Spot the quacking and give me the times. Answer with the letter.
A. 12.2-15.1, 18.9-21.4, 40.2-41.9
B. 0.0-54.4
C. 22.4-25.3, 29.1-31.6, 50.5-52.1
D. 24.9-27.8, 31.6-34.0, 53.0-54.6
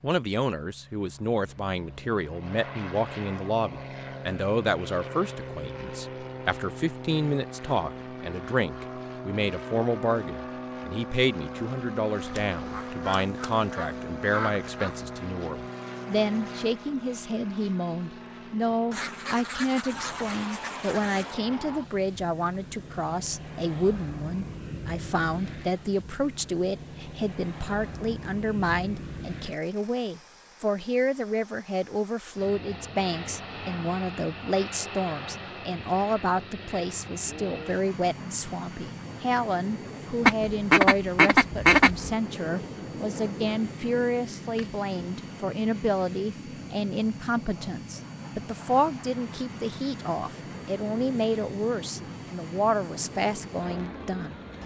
A.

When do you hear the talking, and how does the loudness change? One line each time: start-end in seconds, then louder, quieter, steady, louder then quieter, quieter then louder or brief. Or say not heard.
0.0-54.4 steady.